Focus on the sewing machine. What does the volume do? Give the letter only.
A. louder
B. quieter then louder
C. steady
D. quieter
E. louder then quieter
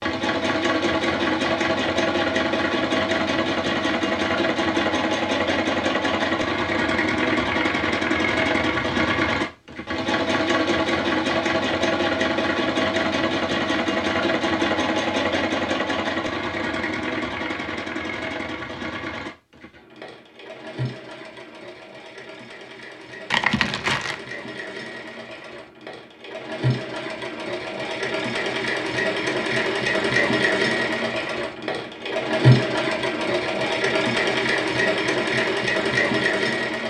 B.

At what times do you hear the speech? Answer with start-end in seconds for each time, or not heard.
not heard.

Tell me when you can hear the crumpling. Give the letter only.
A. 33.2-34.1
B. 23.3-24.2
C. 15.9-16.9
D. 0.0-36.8
B.